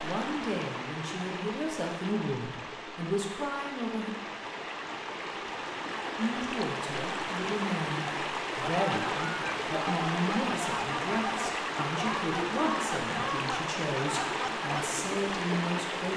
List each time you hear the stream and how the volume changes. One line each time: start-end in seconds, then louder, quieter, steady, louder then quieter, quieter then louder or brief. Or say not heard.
0.0-16.1 louder.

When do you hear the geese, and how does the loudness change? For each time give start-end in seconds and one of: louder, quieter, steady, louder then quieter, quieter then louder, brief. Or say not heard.
8.6-14.7 steady.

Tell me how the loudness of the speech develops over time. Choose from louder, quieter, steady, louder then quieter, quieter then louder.
steady.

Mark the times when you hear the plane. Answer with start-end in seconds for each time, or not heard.
not heard.